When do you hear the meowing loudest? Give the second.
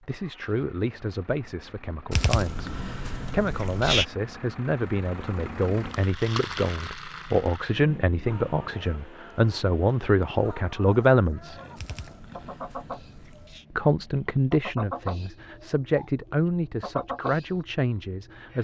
4 s.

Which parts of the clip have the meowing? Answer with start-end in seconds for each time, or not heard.
2.1-4.0, 11.8-13.7.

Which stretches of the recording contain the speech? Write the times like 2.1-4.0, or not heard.
0.1-11.6, 13.7-18.5.